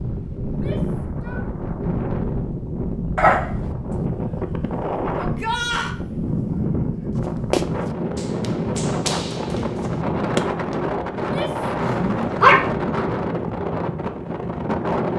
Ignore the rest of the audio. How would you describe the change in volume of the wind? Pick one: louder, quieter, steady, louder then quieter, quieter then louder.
steady.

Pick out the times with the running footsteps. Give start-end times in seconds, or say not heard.
7.2-10.8.